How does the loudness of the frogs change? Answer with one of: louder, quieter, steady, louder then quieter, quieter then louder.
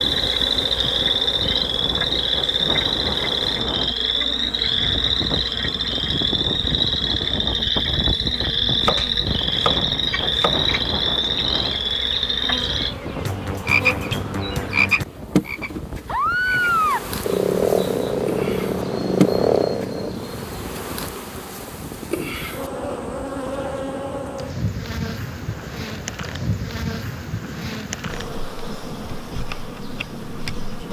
steady.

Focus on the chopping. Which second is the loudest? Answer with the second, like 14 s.
9 s.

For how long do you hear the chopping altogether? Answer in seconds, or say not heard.
2 s.